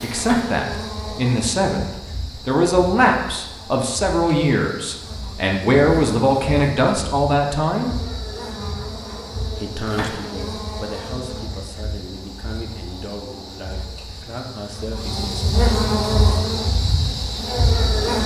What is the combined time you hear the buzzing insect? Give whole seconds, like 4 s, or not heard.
18 s.